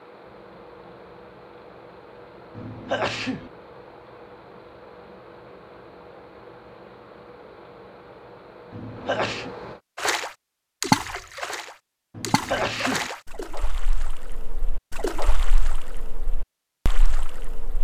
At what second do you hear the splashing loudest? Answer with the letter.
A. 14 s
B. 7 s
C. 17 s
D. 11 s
D.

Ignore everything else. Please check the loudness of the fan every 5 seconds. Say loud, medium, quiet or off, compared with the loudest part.
loud, loud, off, off.